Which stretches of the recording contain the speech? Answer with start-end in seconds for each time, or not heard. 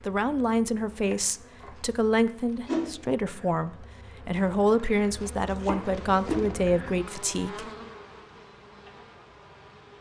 0.1-7.7.